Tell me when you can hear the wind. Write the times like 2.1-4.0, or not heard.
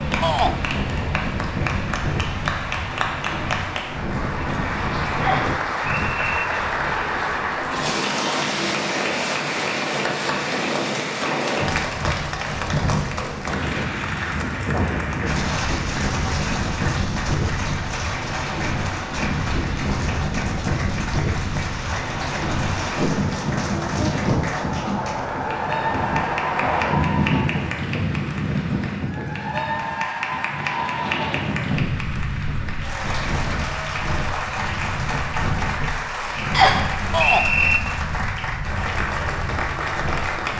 0.0-40.5.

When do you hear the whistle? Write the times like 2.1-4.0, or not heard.
5.2-6.5, 36.5-37.8.